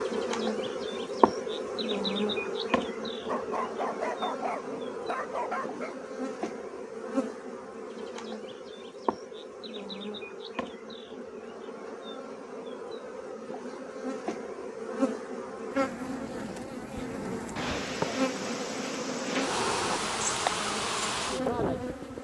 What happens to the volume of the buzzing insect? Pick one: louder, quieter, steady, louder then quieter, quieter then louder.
quieter then louder.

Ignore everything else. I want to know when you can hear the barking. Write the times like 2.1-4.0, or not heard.
3.2-6.0.